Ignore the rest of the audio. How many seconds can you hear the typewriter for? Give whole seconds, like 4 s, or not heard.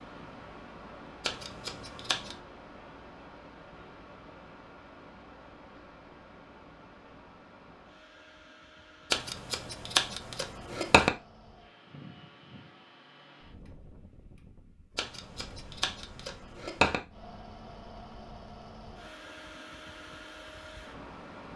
not heard.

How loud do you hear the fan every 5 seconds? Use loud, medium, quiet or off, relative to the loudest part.
loud, medium, medium, loud, loud.